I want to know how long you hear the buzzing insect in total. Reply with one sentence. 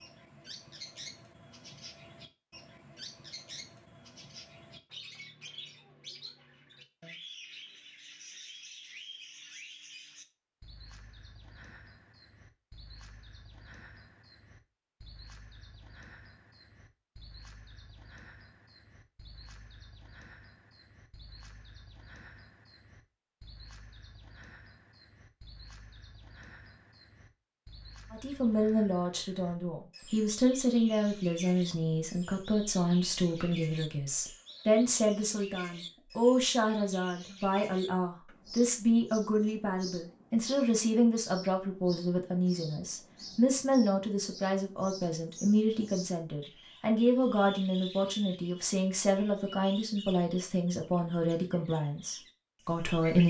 The buzzing insect can't be heard in this clip.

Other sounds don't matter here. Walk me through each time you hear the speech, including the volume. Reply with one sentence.
You can hear the speech from 28.1 to 53.2 s, at a steady volume.